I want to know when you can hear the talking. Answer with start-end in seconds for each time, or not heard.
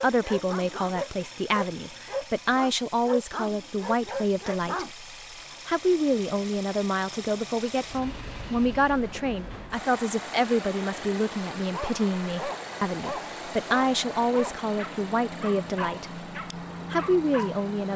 0.0-5.0, 5.7-16.2, 16.9-17.9.